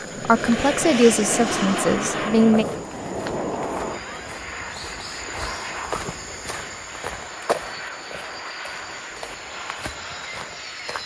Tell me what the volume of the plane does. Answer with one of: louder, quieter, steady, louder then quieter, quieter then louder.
quieter.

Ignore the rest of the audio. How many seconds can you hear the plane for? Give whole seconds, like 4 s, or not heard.
11 s.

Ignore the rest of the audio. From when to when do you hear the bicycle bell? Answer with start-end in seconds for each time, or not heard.
not heard.